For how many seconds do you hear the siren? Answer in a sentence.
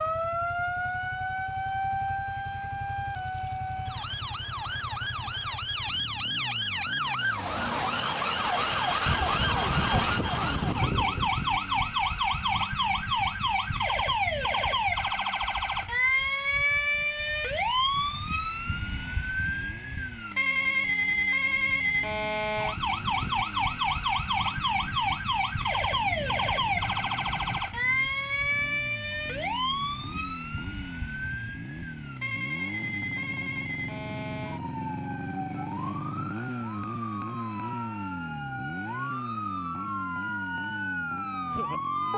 The siren can be heard for 42 seconds in total.